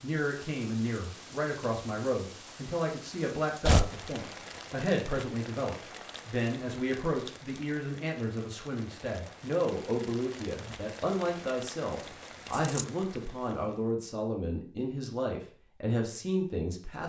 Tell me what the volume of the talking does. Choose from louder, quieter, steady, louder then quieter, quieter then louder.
steady.